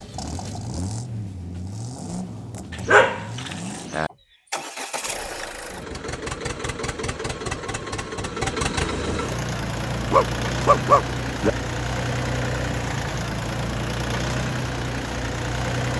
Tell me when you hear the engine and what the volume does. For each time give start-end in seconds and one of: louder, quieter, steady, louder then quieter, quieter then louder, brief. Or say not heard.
0.0-15.9 louder.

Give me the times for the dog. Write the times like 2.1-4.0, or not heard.
2.7-4.1, 10.1-11.5.